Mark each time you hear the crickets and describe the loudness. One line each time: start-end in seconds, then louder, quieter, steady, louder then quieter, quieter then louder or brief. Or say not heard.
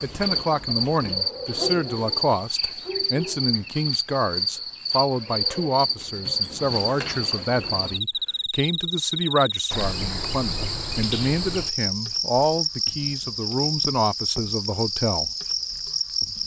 0.0-16.4 steady.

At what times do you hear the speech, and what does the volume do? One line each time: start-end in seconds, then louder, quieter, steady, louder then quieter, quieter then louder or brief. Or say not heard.
0.0-15.3 steady.